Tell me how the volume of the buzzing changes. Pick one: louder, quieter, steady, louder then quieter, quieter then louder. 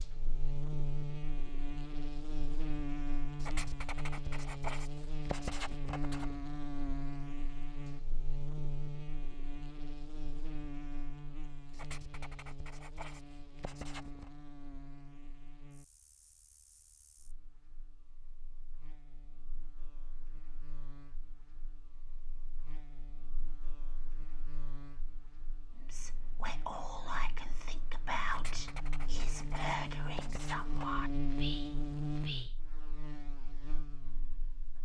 quieter then louder.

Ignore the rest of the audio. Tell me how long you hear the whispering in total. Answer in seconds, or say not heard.
7 s.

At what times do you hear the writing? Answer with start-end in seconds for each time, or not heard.
3.4-6.3, 11.7-14.3, 28.2-30.9.